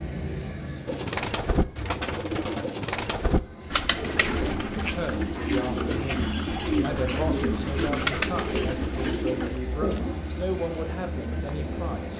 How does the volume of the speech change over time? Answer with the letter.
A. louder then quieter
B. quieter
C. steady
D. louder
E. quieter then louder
C.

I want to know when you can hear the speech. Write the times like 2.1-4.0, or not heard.
4.8-12.1.